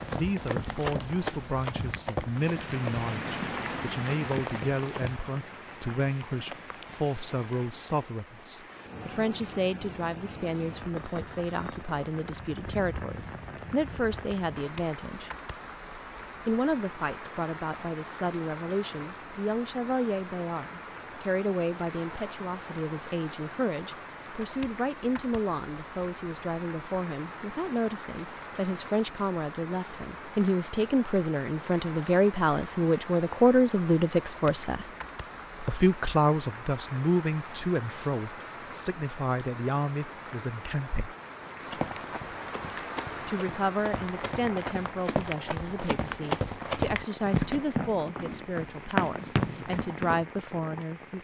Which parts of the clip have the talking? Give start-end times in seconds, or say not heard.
0.1-15.3, 16.4-34.9, 35.6-41.1, 43.2-51.1.